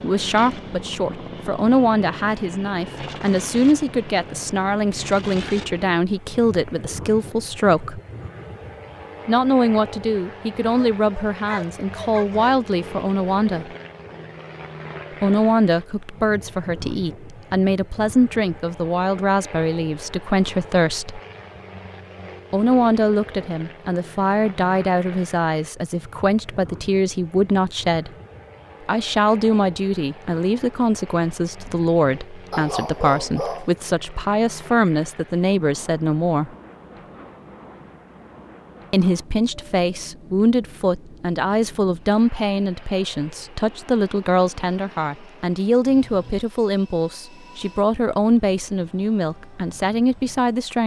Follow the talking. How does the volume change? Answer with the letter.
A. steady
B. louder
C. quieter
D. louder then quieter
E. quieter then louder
A.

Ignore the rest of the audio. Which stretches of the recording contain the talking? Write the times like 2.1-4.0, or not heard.
0.0-8.0, 9.2-13.7, 15.2-21.2, 22.5-28.1, 28.9-36.5, 38.9-50.8.